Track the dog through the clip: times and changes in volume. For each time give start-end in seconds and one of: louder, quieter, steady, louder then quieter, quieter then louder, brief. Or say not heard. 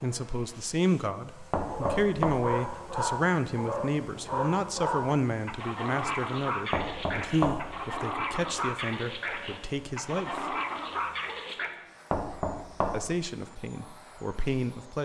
1.6-11.7 steady.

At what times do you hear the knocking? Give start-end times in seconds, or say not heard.
1.5-2.5, 6.7-7.8, 12.1-13.2.